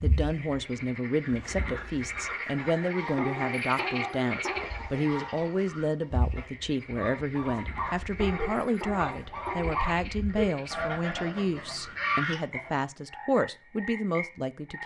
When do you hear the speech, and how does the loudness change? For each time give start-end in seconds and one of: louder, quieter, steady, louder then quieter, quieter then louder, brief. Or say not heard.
0.0-14.8 steady.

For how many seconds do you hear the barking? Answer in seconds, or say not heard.
3 s.